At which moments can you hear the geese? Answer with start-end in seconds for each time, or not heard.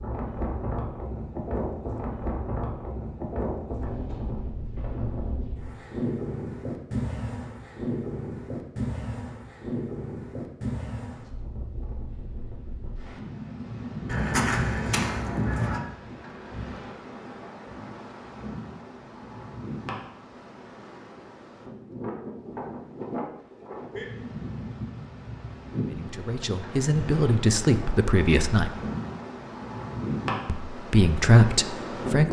14.1-15.8.